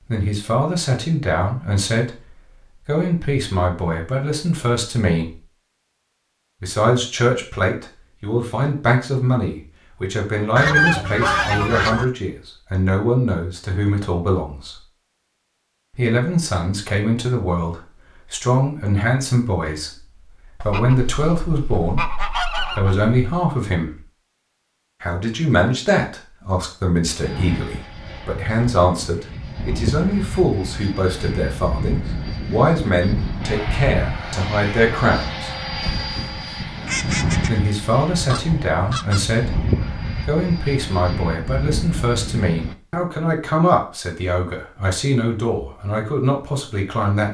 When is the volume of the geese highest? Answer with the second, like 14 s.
11 s.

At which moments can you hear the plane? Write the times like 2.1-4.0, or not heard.
27.2-42.8.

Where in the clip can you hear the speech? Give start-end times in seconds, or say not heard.
0.1-5.4, 6.6-14.8, 15.9-24.0, 25.0-35.5, 37.4-47.3.